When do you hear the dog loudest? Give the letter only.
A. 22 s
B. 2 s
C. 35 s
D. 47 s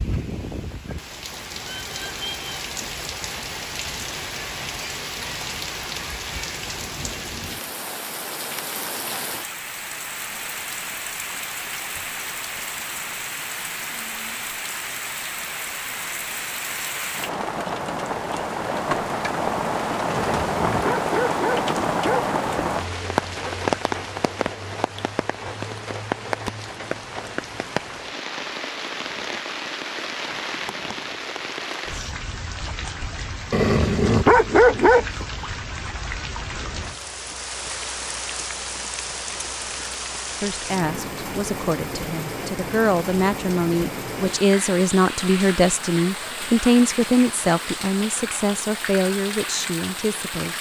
C.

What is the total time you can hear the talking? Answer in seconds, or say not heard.
10 s.